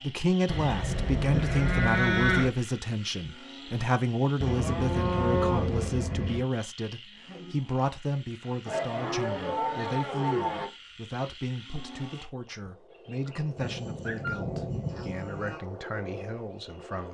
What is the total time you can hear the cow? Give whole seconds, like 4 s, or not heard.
8 s.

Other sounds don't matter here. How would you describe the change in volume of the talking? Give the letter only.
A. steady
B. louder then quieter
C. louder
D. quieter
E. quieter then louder
D.